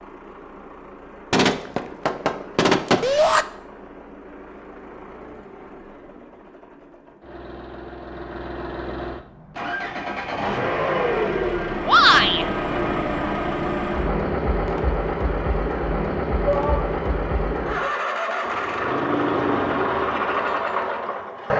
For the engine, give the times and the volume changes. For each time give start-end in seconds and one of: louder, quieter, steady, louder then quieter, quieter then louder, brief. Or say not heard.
0.0-21.5 louder.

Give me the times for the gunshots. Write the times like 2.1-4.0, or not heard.
1.3-3.1.